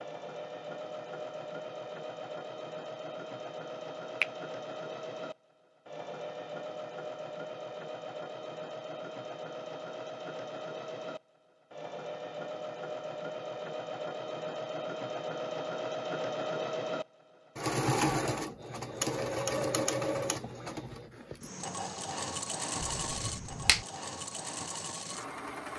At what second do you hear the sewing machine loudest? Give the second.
18 s.